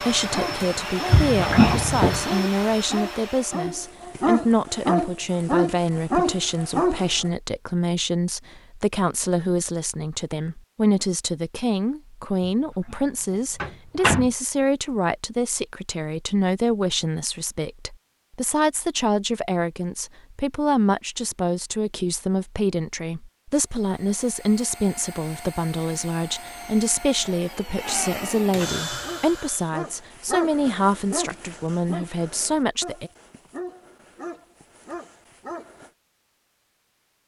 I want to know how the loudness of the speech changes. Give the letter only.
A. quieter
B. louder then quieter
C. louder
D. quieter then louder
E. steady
E.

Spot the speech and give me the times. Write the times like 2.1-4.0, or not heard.
0.0-33.1.